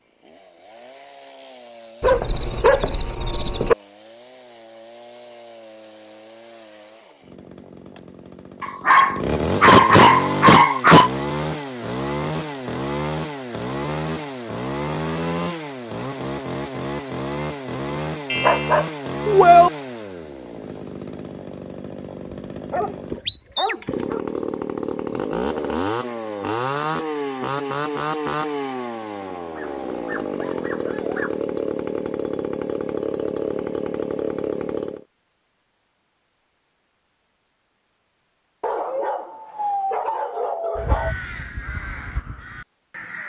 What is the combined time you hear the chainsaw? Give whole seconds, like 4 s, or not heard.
35 s.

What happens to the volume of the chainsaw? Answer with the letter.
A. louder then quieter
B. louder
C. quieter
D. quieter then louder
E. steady
B.